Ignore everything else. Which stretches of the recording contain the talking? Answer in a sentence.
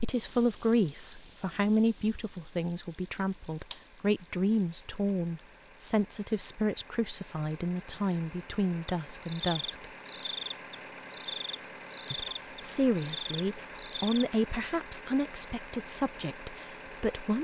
The talking can be heard from 0.0 to 9.8 s and from 12.1 to 17.3 s.